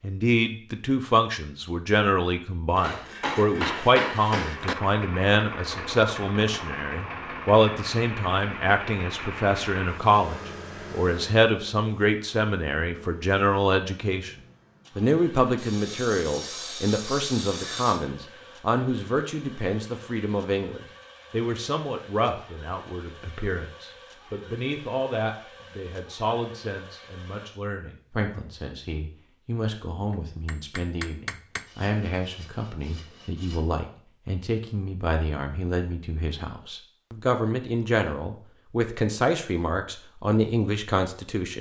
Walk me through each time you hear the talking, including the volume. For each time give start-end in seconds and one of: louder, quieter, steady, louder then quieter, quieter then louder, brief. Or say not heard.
0.0-14.3 steady
14.9-41.5 quieter then louder.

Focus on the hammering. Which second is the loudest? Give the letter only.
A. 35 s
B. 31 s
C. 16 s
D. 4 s
D.